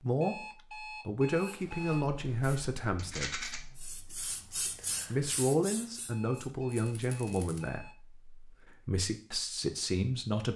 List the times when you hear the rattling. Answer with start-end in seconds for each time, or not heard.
3.0-3.6, 6.7-7.6.